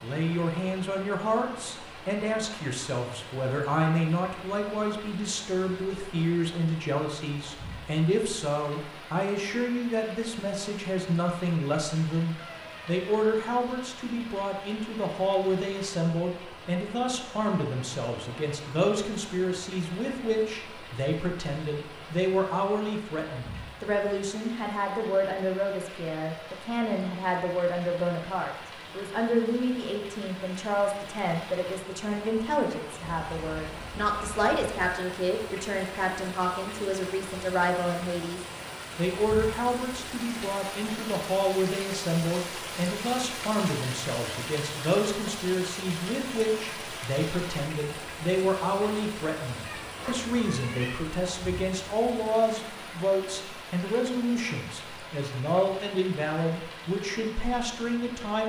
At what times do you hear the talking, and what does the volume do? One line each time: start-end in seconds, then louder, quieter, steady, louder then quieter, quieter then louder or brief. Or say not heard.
0.0-58.4 steady.